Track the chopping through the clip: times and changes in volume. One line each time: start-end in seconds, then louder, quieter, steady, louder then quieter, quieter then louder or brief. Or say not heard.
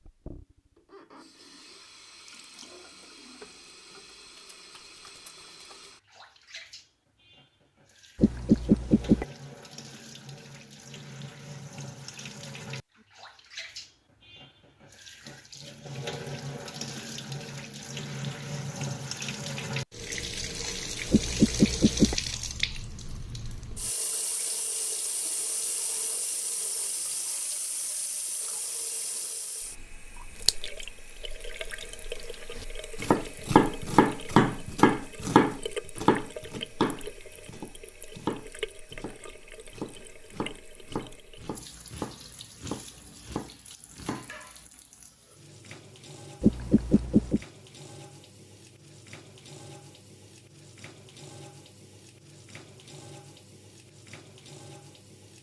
33.0-44.3 quieter.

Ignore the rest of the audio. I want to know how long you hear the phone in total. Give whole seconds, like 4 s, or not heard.
3 s.